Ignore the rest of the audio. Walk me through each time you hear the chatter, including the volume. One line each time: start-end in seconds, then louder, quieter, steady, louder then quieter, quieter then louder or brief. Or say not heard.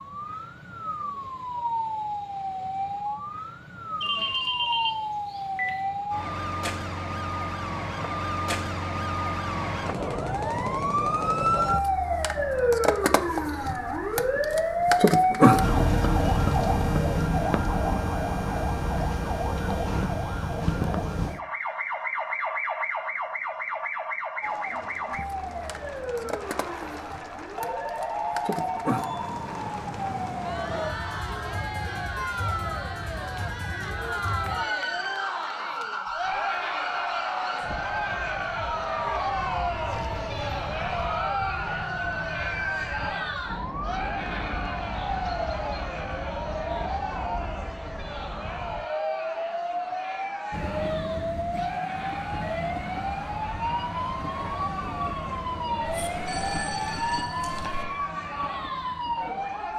24.4-59.7 louder then quieter.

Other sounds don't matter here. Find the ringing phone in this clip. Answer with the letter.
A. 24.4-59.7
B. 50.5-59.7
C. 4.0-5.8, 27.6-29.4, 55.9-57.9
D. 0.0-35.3
C.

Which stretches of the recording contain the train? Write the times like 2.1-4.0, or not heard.
50.5-59.7.